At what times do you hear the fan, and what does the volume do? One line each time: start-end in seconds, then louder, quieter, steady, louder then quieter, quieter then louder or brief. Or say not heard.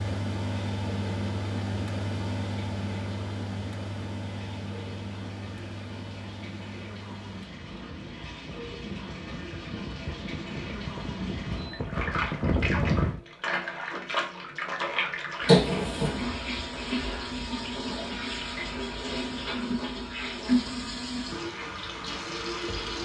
0.0-13.2 quieter then louder.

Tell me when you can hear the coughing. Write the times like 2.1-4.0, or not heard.
15.4-16.1.